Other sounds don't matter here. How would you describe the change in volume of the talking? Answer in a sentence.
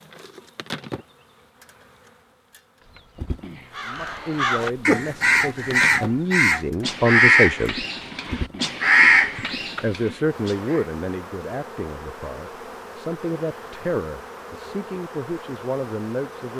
The loudness of the talking goes up, then down.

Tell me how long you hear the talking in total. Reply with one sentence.
You can hear the talking for 11 seconds altogether.